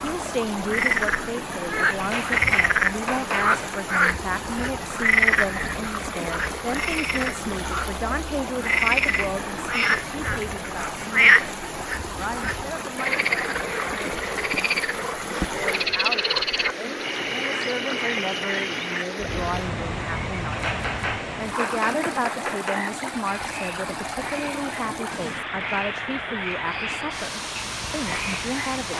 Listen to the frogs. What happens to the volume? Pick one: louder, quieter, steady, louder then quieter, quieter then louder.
quieter.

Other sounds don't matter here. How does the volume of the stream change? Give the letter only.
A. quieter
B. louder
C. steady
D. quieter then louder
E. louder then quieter
C.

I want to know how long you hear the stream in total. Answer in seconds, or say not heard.
29 s.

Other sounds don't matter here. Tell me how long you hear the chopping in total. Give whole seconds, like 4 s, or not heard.
4 s.